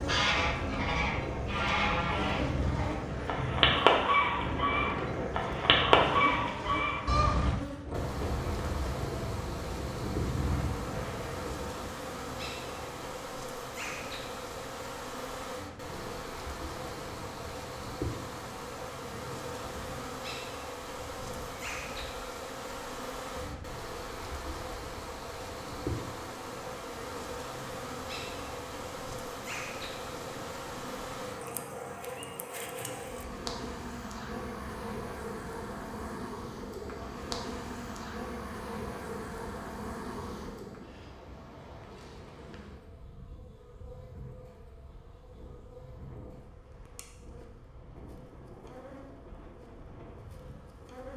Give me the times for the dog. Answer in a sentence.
You can't hear the dog here.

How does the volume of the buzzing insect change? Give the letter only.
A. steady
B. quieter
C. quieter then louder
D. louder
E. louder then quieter
B.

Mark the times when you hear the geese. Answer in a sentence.
The geese can be heard from 0.1 to 7.5 s.